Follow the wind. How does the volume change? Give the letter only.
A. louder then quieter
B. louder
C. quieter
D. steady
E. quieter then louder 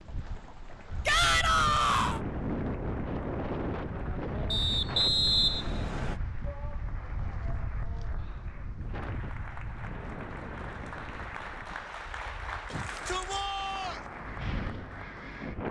C.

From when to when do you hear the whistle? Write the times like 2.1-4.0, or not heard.
4.5-6.2.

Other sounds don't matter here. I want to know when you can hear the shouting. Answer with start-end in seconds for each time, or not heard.
1.1-2.2, 6.4-8.7, 12.7-14.0.